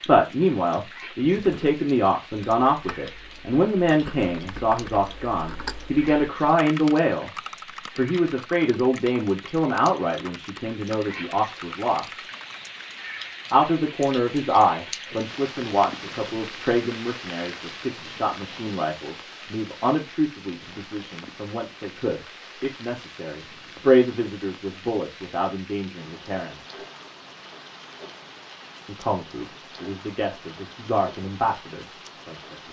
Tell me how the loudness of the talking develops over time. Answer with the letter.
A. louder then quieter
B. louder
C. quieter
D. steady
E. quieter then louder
C.